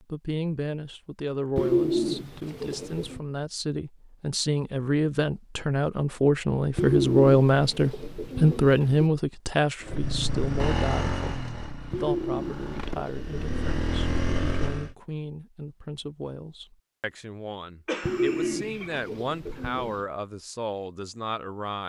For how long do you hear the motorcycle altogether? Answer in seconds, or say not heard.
5 s.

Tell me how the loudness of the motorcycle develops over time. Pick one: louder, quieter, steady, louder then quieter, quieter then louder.
quieter then louder.